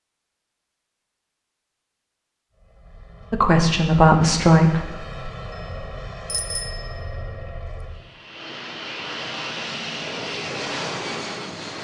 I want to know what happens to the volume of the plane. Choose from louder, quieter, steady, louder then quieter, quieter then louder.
louder.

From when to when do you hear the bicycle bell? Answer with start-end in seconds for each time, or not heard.
5.5-7.5.